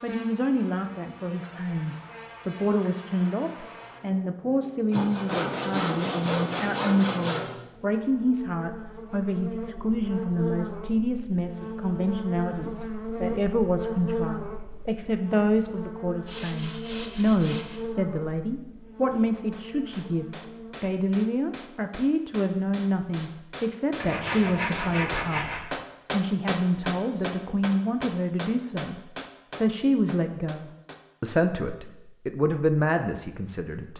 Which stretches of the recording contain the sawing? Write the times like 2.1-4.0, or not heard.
4.9-7.5, 16.2-17.8, 24.0-25.6.